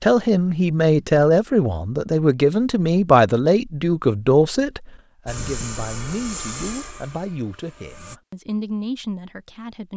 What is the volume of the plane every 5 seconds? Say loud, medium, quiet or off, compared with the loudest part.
off, loud.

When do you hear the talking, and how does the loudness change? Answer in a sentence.
You can hear the talking from 0.0 to 9.9 s, getting quieter.